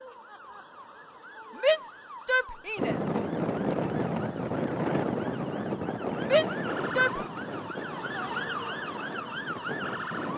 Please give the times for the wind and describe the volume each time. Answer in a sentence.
You can hear the wind from 2.8 to 10.3 s, getting quieter.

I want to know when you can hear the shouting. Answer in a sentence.
You can hear the shouting from 1.6 to 3.0 s and from 6.2 to 7.2 s.